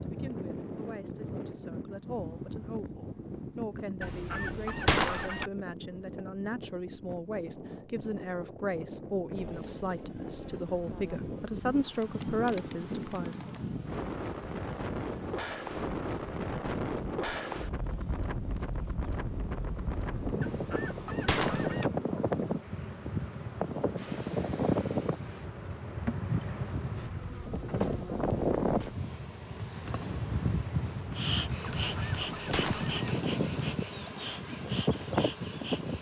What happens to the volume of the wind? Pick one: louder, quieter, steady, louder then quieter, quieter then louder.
louder.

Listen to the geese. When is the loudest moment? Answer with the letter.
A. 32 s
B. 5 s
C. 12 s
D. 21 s
B.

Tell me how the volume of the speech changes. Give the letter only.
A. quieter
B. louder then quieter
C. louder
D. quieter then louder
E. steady
C.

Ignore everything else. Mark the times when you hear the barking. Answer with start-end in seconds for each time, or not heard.
not heard.